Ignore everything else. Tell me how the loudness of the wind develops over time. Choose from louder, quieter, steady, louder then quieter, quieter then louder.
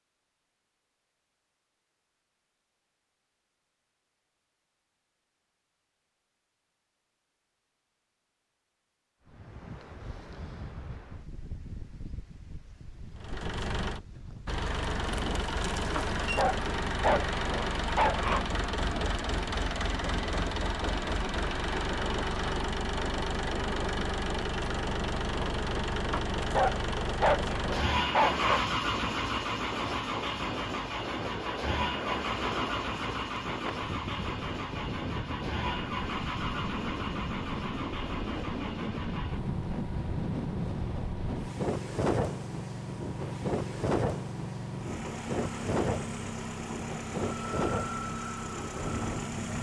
louder.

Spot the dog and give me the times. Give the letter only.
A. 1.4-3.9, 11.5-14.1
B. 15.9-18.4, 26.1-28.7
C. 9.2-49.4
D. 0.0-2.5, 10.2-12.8
B.